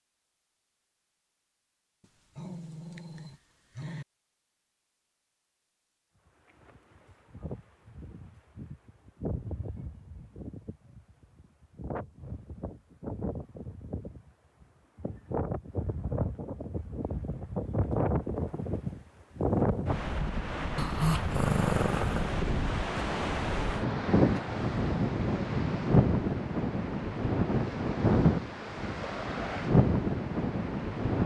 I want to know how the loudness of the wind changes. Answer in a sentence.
The volume of the wind goes up.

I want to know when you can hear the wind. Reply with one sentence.
The wind can be heard from 6.7 to 31.2 s.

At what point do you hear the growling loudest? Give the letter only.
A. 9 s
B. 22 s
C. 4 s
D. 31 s
B.